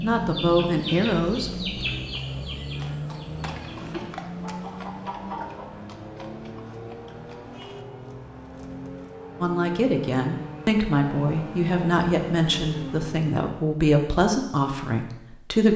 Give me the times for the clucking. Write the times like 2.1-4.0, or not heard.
0.0-5.7.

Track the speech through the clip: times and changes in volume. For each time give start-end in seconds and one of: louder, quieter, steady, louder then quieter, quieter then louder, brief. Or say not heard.
0.0-1.7 brief
9.4-15.7 steady.